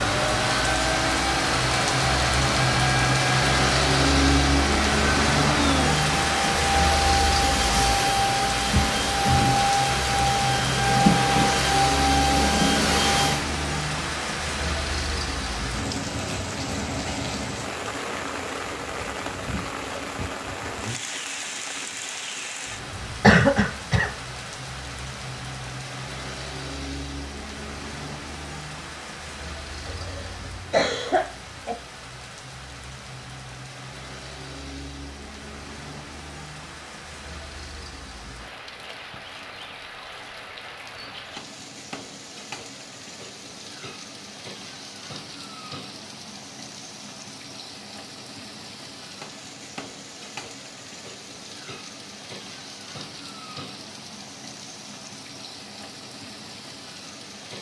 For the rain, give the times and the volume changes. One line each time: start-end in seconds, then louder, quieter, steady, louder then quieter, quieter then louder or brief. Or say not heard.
0.0-57.5 quieter.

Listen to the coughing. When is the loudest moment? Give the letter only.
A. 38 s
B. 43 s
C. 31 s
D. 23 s
D.